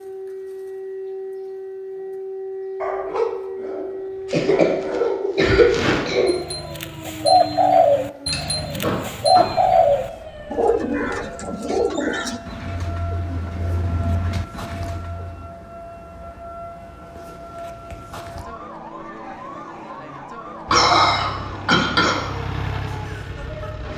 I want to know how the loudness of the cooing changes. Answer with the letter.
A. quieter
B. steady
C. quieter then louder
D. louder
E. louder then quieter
A.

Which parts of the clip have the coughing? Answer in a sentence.
The coughing can be heard from 4.3 to 6.3 s, from 8.3 to 9.4 s and from 20.6 to 22.2 s.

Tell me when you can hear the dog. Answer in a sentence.
You can hear the dog from 2.8 to 5.5 s.